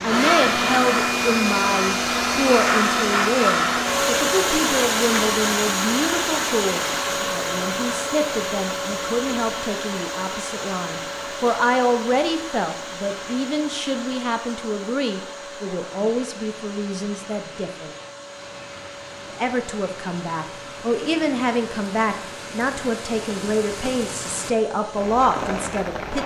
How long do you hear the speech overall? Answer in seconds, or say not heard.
25 s.